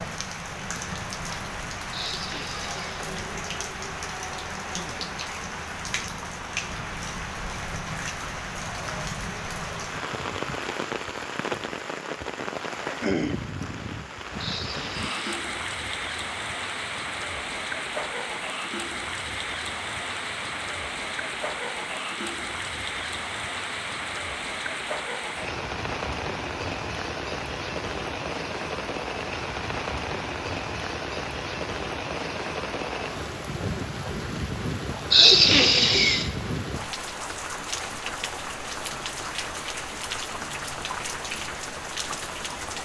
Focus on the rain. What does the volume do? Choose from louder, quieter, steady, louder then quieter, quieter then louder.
steady.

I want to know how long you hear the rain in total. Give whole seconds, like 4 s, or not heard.
43 s.